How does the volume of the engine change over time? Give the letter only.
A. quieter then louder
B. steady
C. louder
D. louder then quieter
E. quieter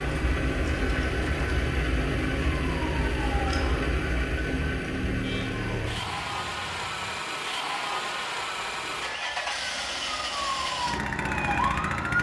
B.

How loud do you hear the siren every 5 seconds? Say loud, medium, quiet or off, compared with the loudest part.
loud, medium, loud.